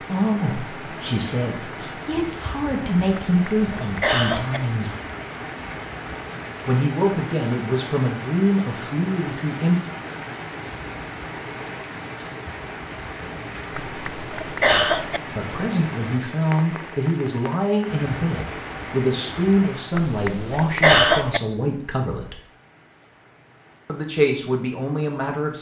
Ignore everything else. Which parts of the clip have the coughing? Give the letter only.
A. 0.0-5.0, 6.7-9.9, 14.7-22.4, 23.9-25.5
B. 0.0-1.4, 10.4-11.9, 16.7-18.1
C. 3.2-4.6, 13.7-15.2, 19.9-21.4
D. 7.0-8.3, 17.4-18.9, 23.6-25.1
C.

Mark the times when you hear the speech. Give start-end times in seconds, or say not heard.
0.0-5.0, 6.7-9.9, 14.7-22.4, 23.9-25.5.